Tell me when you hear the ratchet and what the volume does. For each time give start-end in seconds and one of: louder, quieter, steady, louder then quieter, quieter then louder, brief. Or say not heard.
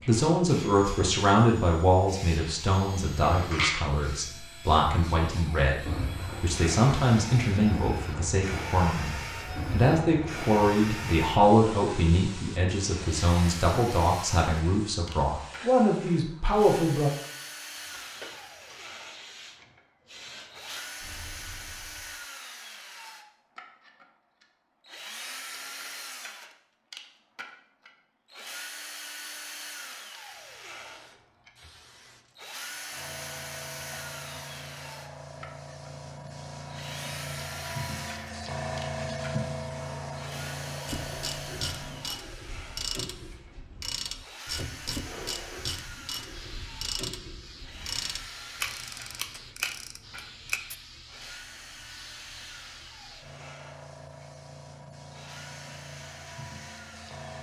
40.9-50.8 steady.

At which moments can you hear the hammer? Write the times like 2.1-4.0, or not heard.
not heard.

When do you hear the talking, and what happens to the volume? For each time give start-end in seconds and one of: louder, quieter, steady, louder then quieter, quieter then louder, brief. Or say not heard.
0.1-17.1 steady.